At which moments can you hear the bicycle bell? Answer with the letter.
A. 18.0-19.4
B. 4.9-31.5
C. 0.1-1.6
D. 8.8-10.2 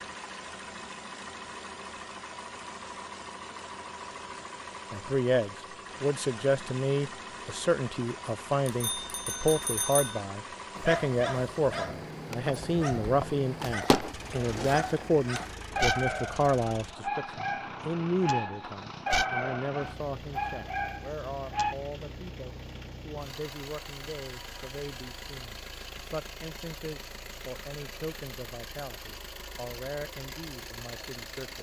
D.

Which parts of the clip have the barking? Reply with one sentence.
The barking can be heard from 10.8 to 21.8 s.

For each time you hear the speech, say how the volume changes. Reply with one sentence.
You can hear the speech from 4.9 to 31.5 s, getting quieter.